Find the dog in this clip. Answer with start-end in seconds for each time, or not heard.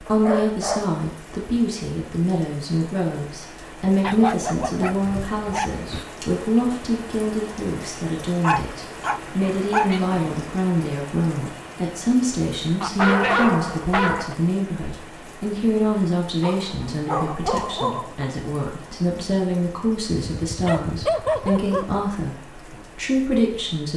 0.1-1.6, 4.0-6.0, 8.4-10.1, 12.8-14.3, 16.4-18.2, 20.4-21.9.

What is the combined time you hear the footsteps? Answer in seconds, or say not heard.
not heard.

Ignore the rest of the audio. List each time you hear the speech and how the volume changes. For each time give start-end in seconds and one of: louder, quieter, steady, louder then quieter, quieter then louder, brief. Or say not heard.
0.0-23.9 steady.